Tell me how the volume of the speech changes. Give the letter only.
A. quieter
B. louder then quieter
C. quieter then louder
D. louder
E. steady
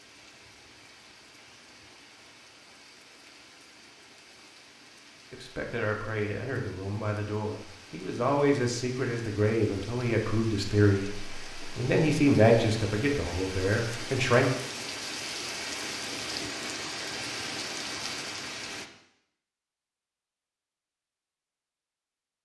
D.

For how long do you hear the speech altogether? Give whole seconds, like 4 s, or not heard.
9 s.